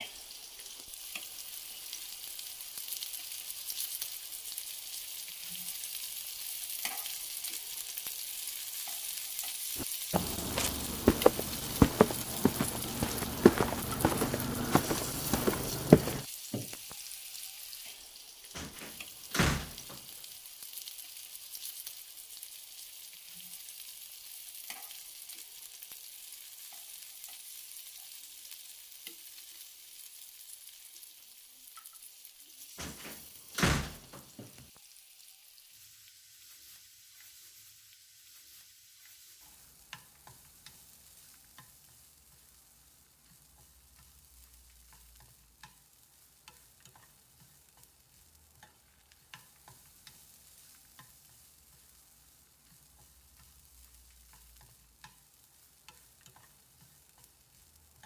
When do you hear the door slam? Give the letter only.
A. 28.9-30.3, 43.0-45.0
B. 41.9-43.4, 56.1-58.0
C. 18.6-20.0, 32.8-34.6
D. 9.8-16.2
C.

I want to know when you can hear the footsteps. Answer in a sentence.
The footsteps can be heard from 9.8 to 16.2 s.